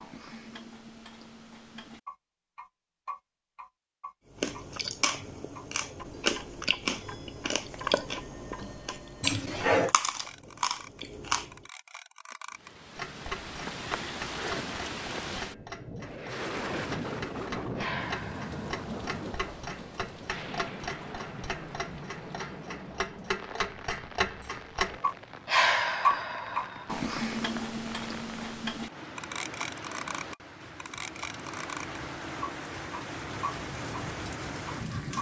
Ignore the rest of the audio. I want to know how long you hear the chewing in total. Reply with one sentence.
You can hear the chewing for 7 seconds altogether.